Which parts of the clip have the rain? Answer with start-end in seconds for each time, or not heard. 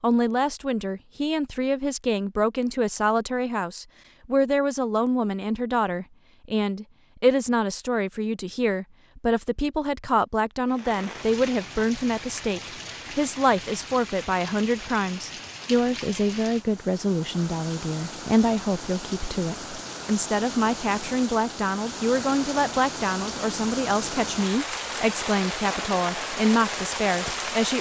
10.7-27.7.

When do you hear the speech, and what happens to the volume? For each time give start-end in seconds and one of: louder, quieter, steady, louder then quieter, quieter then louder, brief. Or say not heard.
0.0-27.7 steady.